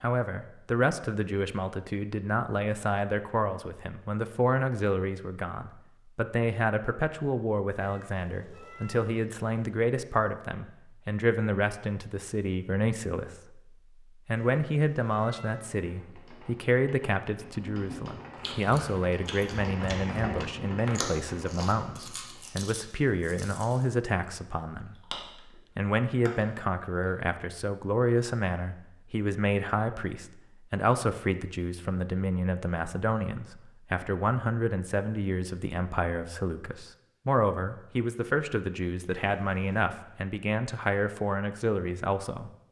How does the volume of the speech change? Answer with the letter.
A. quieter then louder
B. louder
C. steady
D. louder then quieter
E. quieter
C.